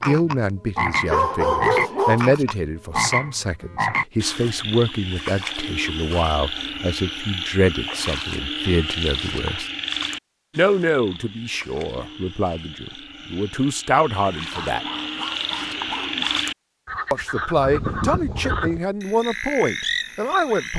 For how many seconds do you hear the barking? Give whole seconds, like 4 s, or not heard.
3 s.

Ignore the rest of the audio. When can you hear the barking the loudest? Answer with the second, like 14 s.
2 s.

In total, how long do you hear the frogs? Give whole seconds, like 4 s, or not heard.
21 s.